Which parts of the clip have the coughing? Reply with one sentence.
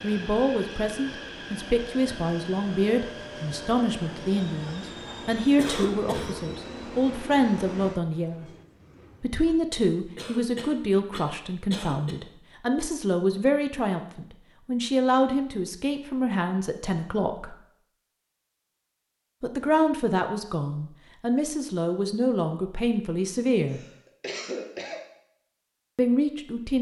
The coughing can be heard from 5.5 to 6.3 s, from 10.2 to 12.2 s and from 23.6 to 25.0 s.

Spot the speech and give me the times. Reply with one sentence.
The speech can be heard from 0.0 to 8.4 s, from 9.2 to 17.6 s, from 19.4 to 23.8 s and from 25.9 to 26.7 s.